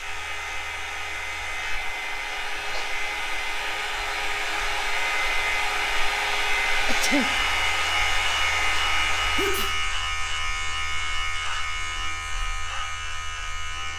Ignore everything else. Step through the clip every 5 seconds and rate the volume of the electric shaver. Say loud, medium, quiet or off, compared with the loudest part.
medium, loud, loud.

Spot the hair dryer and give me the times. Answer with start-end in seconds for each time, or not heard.
0.0-9.4.